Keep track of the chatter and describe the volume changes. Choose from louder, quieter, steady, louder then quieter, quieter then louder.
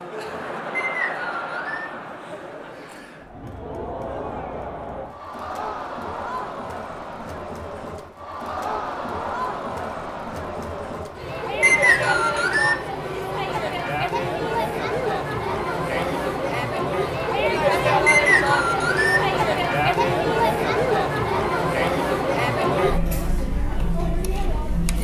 louder.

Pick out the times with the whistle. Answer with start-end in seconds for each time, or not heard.
0.8-1.9, 11.6-12.8, 18.1-19.2.